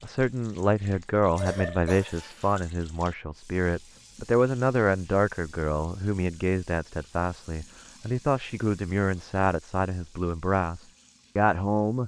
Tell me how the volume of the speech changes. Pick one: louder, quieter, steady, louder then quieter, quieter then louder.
steady.